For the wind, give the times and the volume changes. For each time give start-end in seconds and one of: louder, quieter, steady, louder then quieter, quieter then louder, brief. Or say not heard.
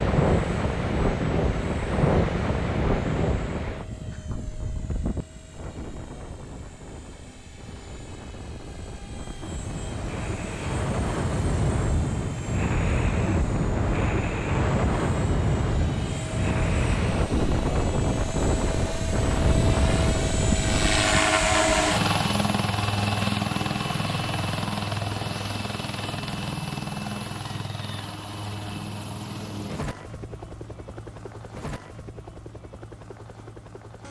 0.0-21.1 quieter then louder.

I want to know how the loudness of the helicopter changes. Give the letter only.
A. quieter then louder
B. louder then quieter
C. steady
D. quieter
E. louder
B.